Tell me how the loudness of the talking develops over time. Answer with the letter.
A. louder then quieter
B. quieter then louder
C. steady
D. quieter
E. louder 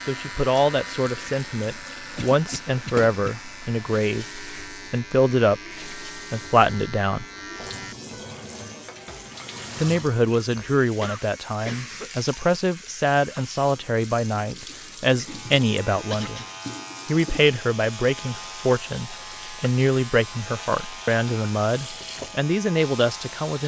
C.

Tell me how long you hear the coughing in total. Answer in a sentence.
You can hear the coughing for 3 seconds altogether.